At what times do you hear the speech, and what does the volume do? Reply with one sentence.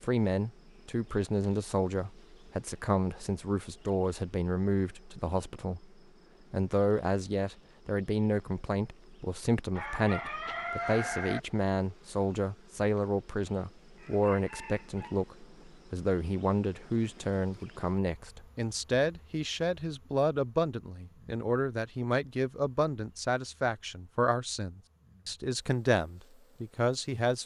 You can hear the speech from 0.0 to 5.8 s, at a steady volume; and from 6.5 to 27.4 s, at a steady volume.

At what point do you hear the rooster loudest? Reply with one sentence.
The volume of the rooster peaks at 11 seconds.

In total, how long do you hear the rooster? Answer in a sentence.
The rooster can be heard for 3 seconds in total.